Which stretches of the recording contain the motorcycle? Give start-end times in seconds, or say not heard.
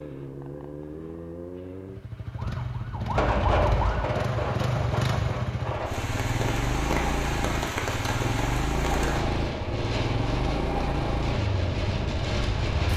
0.0-12.9.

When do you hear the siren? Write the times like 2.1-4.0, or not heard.
2.4-4.0.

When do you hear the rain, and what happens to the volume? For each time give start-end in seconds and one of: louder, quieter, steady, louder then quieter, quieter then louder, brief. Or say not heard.
3.1-12.9 steady.